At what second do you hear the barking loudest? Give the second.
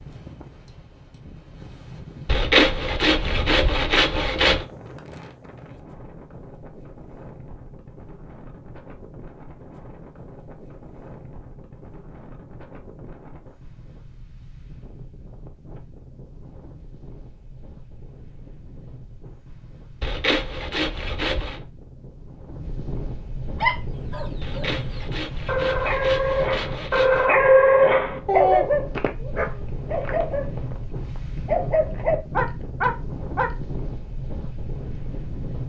28 s.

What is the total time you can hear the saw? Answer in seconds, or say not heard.
7 s.